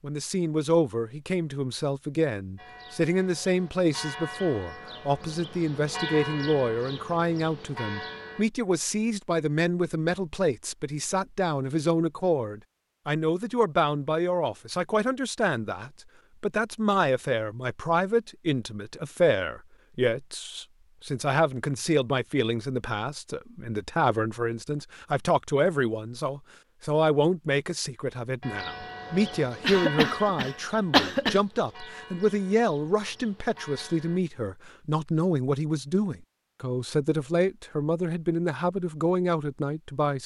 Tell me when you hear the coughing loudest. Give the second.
31 s.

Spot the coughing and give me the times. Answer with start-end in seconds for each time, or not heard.
29.6-31.4.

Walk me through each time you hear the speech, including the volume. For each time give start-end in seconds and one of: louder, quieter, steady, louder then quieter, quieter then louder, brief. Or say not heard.
0.0-40.2 steady.